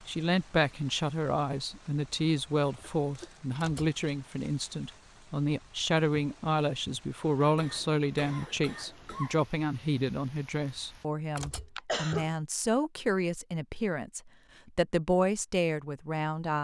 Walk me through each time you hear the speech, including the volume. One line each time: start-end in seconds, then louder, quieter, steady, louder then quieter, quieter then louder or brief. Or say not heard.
0.1-16.5 steady.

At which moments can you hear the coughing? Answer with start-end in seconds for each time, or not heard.
3.0-3.5, 7.4-9.4, 11.3-12.3.